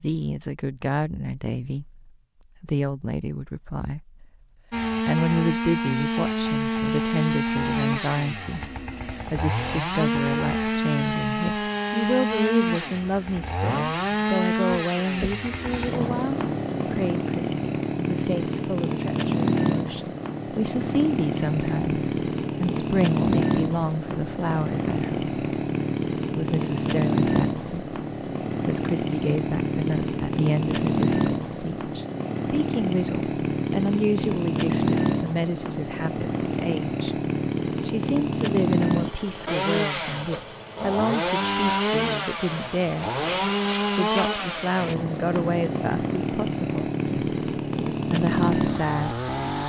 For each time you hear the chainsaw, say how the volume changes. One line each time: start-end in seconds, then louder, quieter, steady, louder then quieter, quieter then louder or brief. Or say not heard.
4.7-49.6 steady.